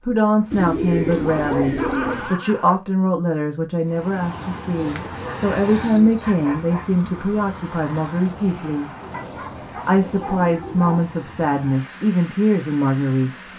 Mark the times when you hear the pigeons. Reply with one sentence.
The pigeons can be heard from 0.5 to 2.3 s, from 4.8 to 6.3 s and from 9.0 to 11.0 s.